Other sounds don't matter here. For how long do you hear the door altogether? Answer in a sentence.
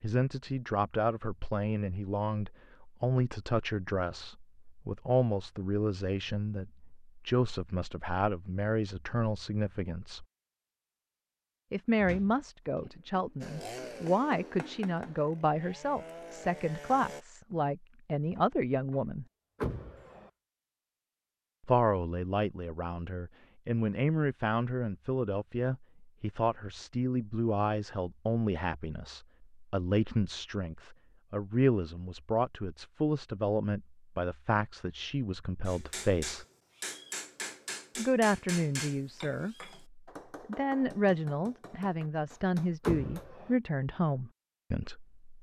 The door can be heard for 2 seconds in total.